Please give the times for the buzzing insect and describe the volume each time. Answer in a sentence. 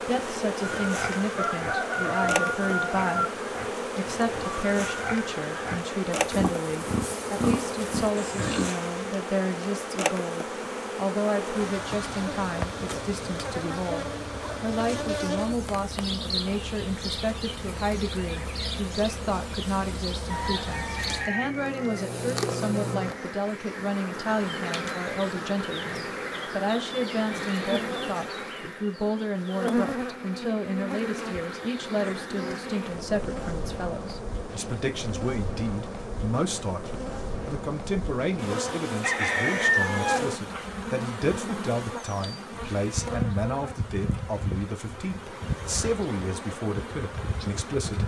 The buzzing insect can be heard from 0.0 to 48.0 s, at a steady volume.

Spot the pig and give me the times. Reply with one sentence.
The pig can be heard from 0.6 to 8.8 s.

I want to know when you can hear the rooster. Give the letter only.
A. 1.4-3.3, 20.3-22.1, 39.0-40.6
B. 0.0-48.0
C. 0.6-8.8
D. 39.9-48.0
A.